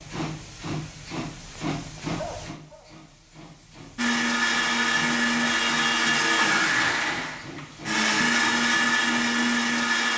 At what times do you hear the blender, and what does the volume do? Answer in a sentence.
The blender can be heard from 4.0 to 10.1 s, at a steady volume.